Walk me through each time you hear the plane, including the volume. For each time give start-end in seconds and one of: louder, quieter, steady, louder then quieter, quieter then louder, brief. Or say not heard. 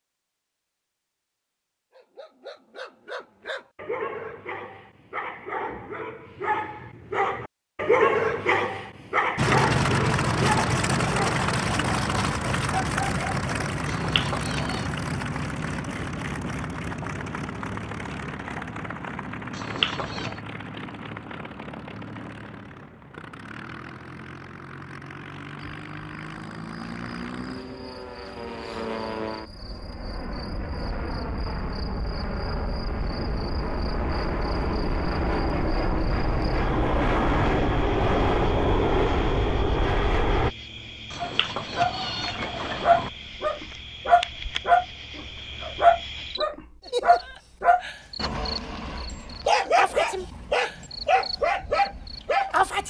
9.3-40.5 quieter then louder.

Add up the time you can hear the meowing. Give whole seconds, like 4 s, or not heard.
4 s.